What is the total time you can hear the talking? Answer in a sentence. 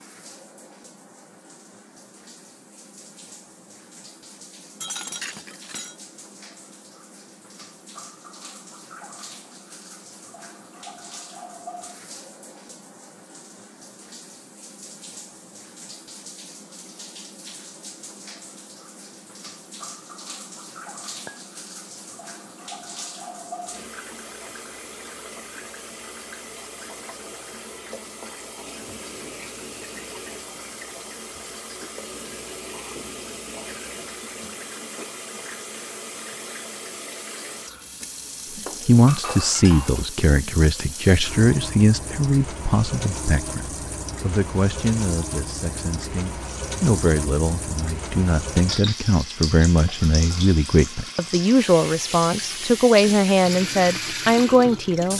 The talking can be heard for 16 seconds in total.